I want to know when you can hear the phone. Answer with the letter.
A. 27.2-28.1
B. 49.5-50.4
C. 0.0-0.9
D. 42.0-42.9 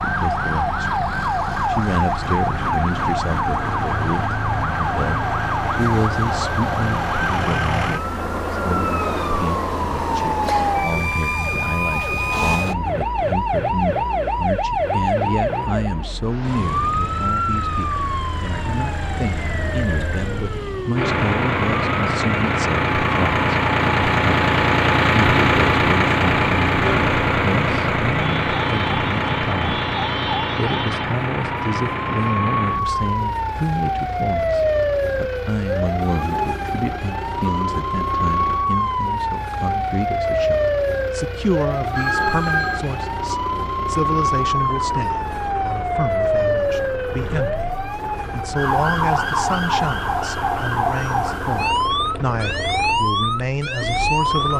D.